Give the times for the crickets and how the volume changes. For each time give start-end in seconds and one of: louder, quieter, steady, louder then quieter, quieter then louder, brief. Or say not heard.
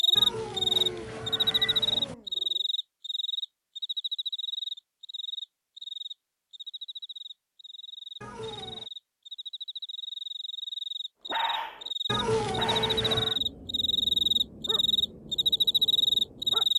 0.0-16.7 quieter then louder.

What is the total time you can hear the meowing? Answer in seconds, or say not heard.
4 s.